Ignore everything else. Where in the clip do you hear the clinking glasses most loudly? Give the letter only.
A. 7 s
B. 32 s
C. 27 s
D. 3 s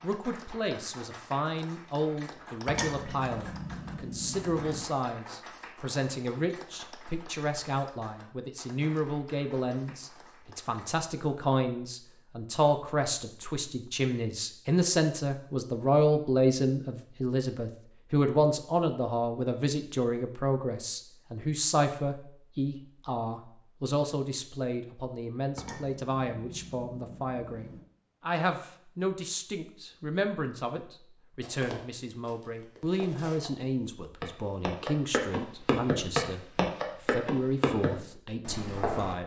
D.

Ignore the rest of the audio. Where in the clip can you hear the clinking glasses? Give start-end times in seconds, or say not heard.
2.6-4.8, 25.6-27.9.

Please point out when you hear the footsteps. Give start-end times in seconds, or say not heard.
31.4-39.1.